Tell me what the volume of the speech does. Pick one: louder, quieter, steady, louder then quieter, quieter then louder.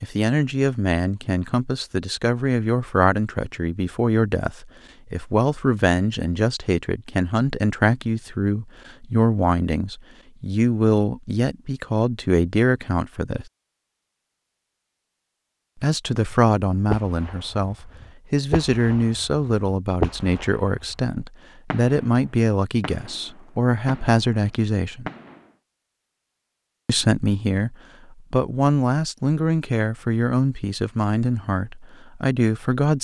steady.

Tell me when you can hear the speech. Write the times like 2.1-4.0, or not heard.
0.0-13.4, 15.8-25.1, 26.9-33.0.